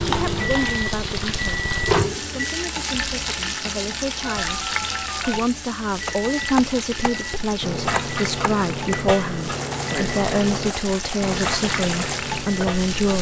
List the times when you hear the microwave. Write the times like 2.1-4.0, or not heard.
0.0-2.6, 5.9-13.1.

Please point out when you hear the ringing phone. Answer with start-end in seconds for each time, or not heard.
4.2-5.5.